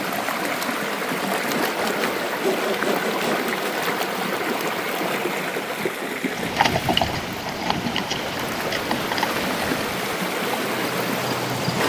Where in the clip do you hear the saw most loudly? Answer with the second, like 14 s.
3 s.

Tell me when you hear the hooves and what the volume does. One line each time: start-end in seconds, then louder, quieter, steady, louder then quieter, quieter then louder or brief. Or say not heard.
6.2-11.8 quieter.